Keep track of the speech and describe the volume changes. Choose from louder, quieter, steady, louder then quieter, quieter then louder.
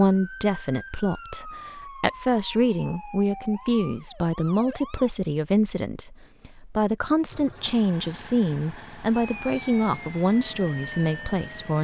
steady.